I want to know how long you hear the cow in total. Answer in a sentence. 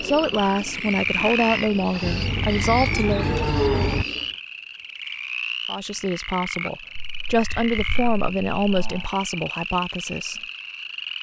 The cow can be heard for 4 seconds in total.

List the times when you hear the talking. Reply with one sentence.
You can hear the talking from 0.0 to 3.2 s and from 5.7 to 10.4 s.